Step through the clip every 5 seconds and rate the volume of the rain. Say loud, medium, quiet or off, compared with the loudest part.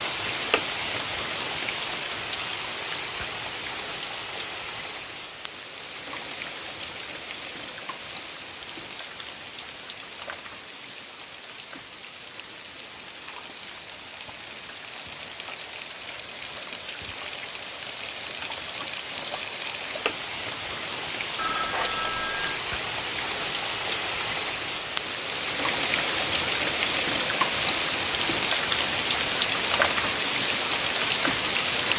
medium, quiet, quiet, medium, medium, loud, loud.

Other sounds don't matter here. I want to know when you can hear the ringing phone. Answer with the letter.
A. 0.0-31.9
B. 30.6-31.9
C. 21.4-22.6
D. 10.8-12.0
C.